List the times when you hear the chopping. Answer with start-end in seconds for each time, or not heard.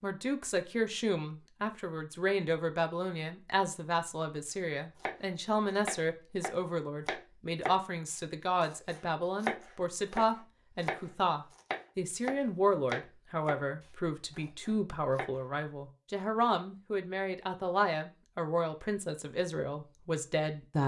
5.0-15.4.